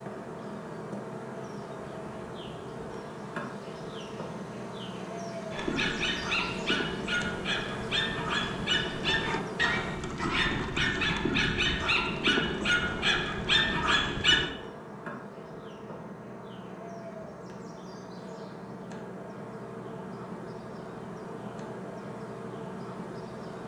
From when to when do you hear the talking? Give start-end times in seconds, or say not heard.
not heard.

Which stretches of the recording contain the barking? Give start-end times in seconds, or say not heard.
5.5-14.5.